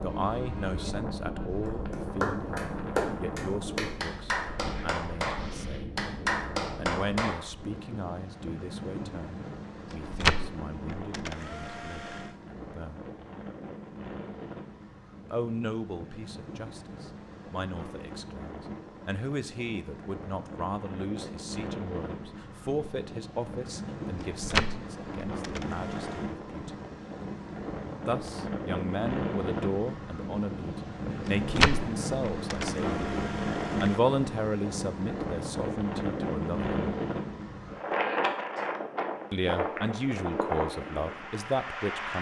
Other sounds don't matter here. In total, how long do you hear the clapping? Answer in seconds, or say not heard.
6 s.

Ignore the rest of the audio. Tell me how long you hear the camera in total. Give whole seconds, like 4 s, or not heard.
7 s.